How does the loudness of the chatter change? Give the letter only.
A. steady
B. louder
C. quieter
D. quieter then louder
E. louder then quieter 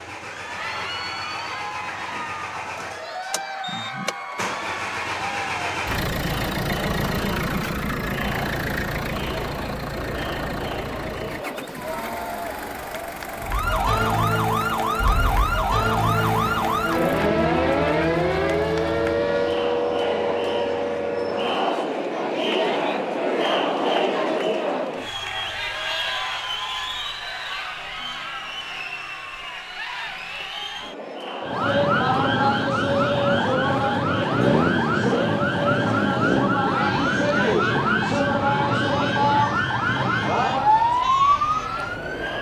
E.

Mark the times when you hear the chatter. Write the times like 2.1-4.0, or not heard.
0.1-42.3.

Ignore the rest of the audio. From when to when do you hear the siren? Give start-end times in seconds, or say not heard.
13.4-21.6, 31.4-42.3.